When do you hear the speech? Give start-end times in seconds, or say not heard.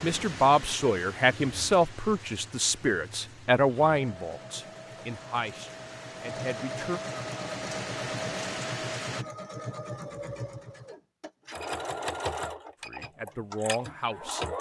0.0-7.0, 12.8-14.4.